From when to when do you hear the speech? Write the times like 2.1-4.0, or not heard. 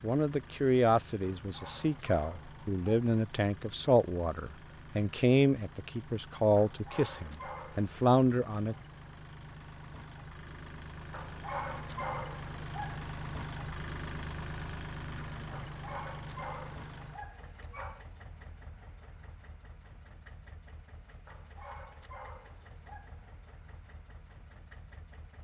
0.0-8.8.